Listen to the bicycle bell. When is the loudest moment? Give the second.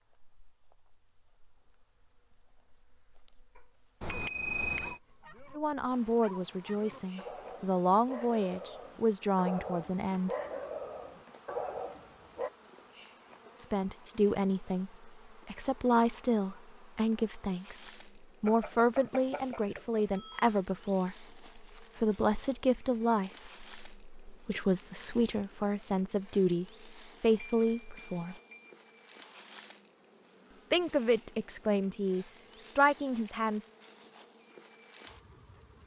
5 s.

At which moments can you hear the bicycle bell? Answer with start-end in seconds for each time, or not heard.
4.0-5.0, 18.4-20.6, 27.4-28.7.